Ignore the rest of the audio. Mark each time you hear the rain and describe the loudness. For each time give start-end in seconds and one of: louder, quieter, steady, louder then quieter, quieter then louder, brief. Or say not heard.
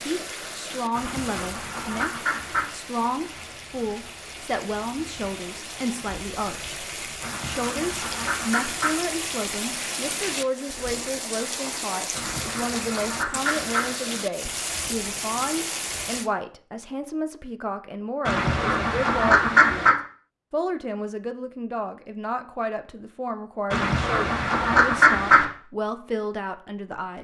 0.0-16.3 louder.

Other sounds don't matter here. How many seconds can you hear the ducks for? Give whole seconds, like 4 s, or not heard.
9 s.